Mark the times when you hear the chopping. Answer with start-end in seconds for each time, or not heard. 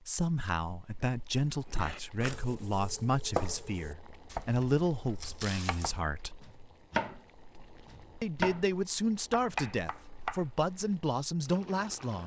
1.6-7.2, 7.8-8.7, 9.3-10.4.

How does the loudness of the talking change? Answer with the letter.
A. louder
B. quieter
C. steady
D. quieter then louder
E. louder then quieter
C.